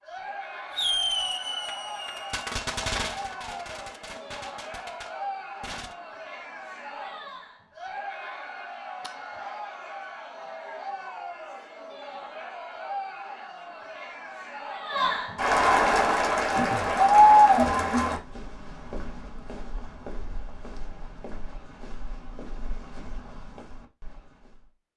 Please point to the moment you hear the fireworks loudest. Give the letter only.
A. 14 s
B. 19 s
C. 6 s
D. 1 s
D.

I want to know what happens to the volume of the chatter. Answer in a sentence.
The volume of the chatter goes up.